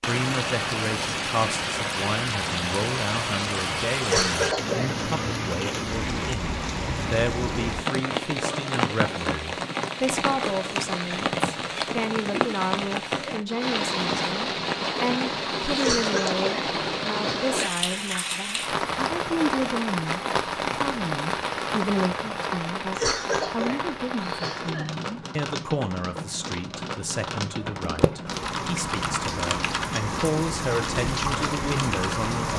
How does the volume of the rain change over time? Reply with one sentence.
The volume of the rain stays about the same.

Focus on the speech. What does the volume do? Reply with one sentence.
The loudness of the speech stays about the same.